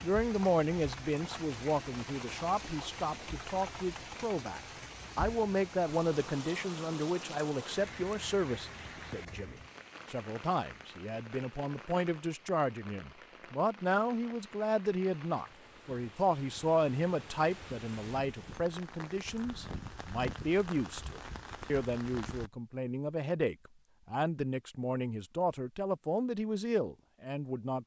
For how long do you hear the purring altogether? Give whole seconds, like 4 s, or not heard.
not heard.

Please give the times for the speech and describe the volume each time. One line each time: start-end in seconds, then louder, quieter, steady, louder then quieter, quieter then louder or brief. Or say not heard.
0.0-27.8 steady.